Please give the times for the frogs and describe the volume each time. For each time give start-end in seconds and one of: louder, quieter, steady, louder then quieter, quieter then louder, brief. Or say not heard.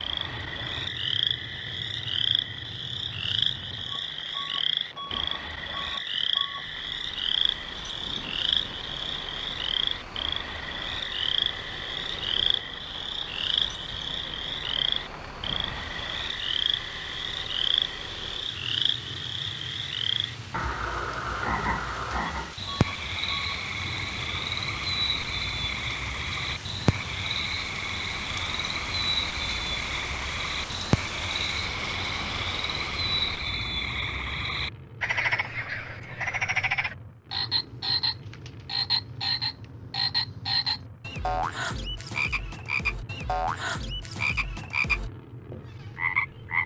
0.0-46.6 steady.